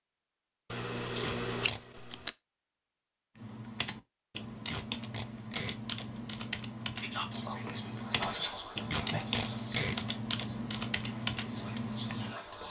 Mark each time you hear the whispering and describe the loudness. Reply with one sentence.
The whispering can be heard from 7.0 to 12.6 s, getting quieter then louder.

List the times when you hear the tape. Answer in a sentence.
You can hear the tape from 1.2 to 1.8 s, from 4.7 to 5.8 s and from 8.9 to 9.9 s.